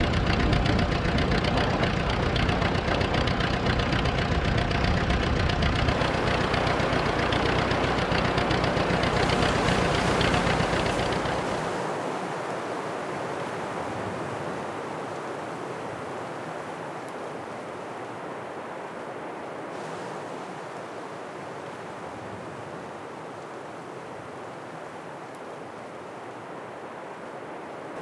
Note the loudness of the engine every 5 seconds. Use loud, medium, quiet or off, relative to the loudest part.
loud, loud, loud, off, off, off.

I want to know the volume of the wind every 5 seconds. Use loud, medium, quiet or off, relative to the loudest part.
loud, loud, loud, medium, medium, medium.